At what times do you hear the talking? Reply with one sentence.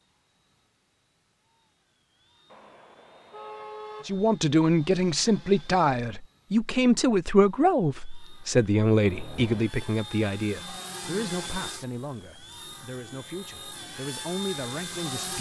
You can hear the talking from 4.0 to 15.3 s.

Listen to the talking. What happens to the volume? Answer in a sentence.
The loudness of the talking goes down.